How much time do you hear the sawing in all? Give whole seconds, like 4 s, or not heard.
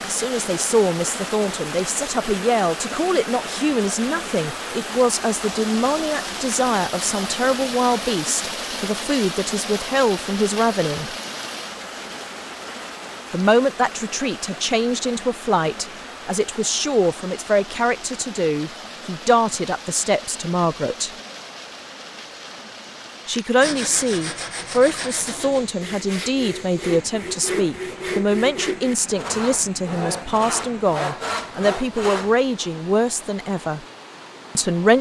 9 s.